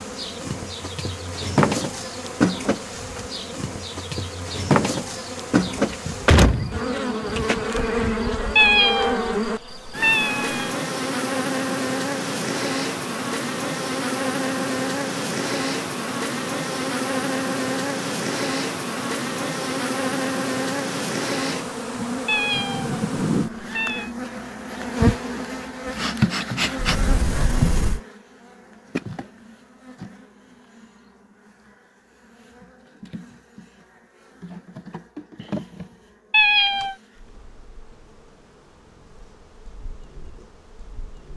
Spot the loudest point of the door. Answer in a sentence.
The volume of the door peaks at 6 seconds.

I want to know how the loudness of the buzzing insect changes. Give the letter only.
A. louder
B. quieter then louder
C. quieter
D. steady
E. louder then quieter
C.